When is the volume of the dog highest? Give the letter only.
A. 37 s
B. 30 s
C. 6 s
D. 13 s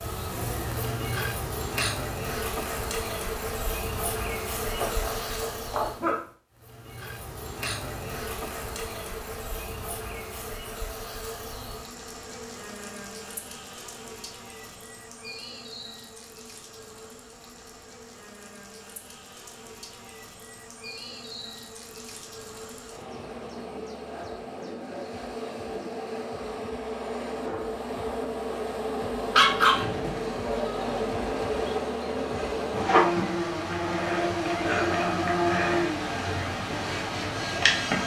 B.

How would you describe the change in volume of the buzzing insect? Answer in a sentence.
The loudness of the buzzing insect goes down, then up.